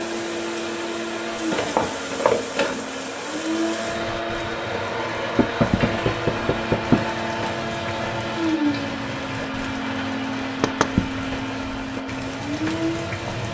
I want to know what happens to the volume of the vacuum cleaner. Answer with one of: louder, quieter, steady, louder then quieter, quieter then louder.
steady.